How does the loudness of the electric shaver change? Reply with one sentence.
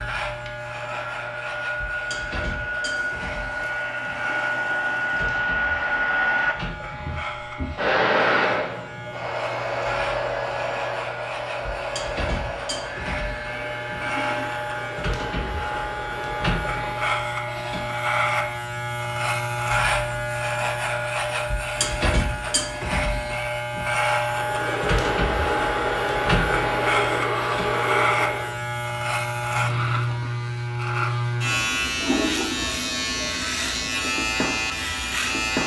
The volume of the electric shaver goes up.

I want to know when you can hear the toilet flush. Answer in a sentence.
The toilet flush can be heard from 3.0 to 5.3 s, from 13.5 to 14.7 s and from 31.9 to 32.7 s.